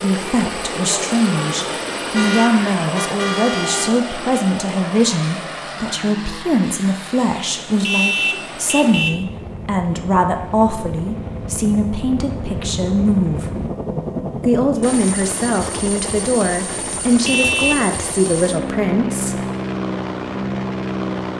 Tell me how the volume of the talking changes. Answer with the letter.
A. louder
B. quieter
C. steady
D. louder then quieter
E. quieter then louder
C.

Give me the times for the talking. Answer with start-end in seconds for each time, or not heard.
0.0-13.6, 14.4-19.4.